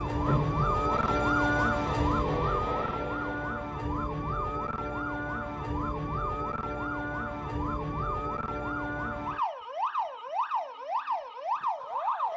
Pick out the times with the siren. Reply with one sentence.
You can hear the siren from 0.0 to 12.3 s.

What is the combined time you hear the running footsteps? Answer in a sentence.
The running footsteps can't be heard in this clip.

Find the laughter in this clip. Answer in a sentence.
The laughter can't be heard in this clip.